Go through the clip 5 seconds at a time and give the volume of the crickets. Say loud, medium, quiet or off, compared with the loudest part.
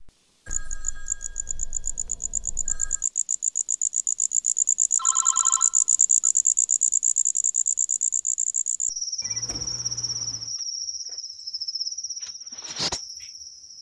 loud, loud, medium.